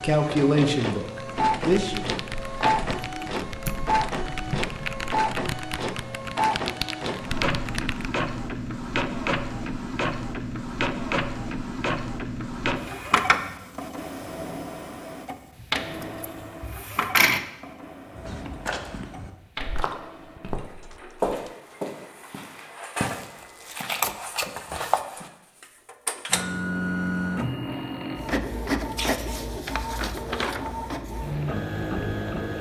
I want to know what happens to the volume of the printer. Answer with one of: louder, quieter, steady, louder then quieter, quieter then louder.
quieter then louder.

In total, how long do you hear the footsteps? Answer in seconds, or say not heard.
7 s.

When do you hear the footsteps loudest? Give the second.
21 s.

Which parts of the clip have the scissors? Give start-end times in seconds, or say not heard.
3.6-4.2, 15.6-17.4, 23.4-25.1.